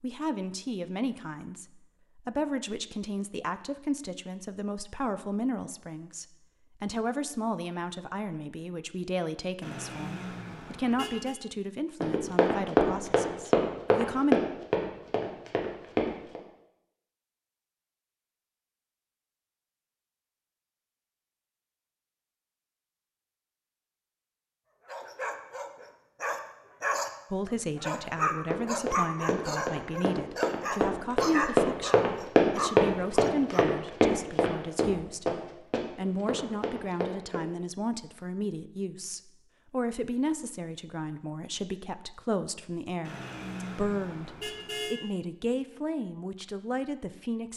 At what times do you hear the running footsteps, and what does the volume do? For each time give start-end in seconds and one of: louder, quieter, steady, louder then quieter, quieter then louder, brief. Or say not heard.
12.0-16.4 quieter
28.5-37.4 louder then quieter.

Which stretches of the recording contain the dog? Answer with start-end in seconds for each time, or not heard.
24.9-33.9.